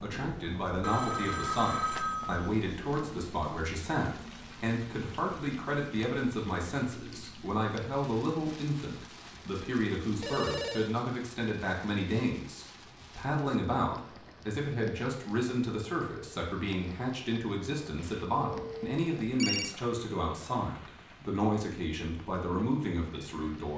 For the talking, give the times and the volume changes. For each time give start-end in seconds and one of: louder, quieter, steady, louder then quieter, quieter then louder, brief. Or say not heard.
0.0-23.7 steady.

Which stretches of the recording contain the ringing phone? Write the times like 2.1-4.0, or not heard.
0.8-2.5, 10.2-10.9, 17.9-19.8.